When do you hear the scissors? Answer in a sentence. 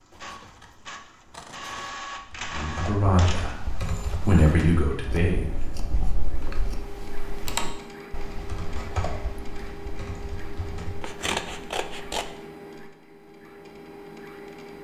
You can hear the scissors from 0.1 to 1.9 s, from 5.0 to 7.0 s and from 11.0 to 12.2 s.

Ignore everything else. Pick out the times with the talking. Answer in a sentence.
You can hear the talking from 2.5 to 5.8 s.